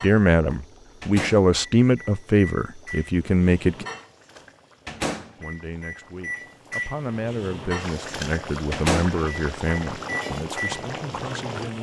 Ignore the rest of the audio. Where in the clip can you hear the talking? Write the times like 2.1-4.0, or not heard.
0.0-3.9, 5.3-11.7.